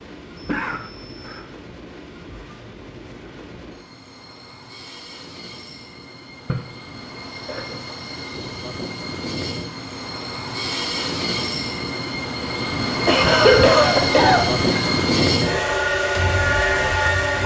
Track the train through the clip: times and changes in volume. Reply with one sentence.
The train can be heard from 0.0 to 17.4 s, getting louder.